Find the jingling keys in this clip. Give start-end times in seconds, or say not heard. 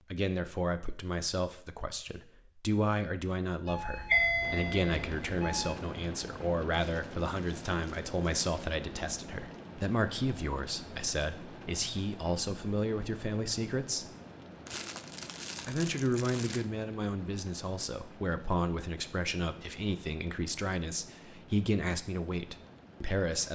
not heard.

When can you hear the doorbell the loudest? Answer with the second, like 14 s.
4 s.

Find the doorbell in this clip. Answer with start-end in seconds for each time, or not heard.
3.6-5.7.